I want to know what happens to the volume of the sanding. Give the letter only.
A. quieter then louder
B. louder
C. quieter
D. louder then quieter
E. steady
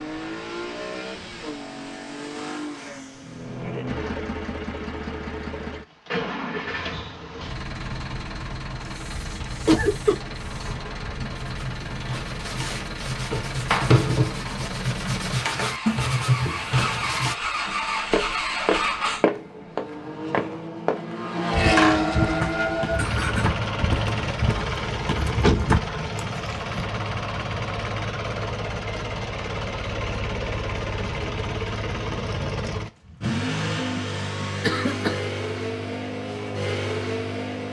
B.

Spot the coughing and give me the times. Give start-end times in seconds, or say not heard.
9.7-10.3, 21.8-23.5, 34.6-35.2.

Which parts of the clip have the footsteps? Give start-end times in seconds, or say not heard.
17.6-26.8.